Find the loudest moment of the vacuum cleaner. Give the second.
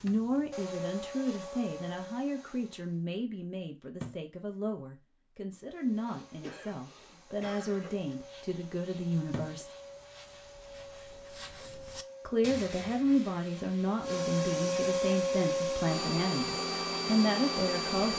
15 s.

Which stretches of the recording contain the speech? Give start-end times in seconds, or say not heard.
0.0-9.7, 12.2-18.1.